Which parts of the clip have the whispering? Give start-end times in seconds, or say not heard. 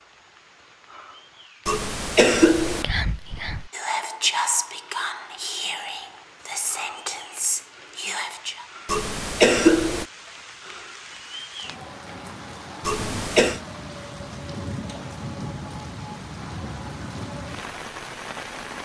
2.6-8.7.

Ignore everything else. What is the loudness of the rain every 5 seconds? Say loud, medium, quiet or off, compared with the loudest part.
quiet, medium, loud, loud.